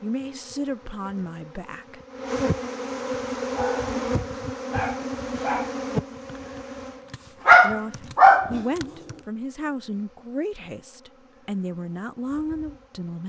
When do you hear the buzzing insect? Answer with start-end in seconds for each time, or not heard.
0.0-13.2.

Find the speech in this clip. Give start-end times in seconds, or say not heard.
0.0-2.0, 7.6-13.2.